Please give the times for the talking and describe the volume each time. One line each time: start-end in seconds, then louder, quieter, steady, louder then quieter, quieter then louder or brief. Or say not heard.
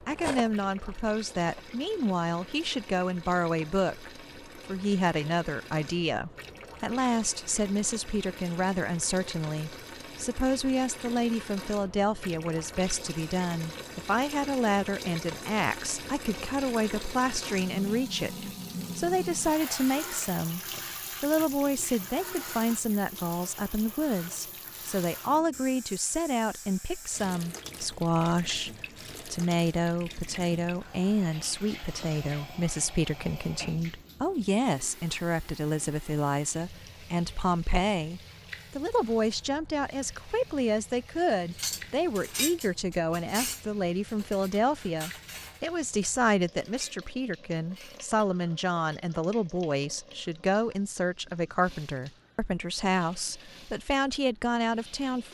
0.1-20.6 steady
21.2-55.3 steady.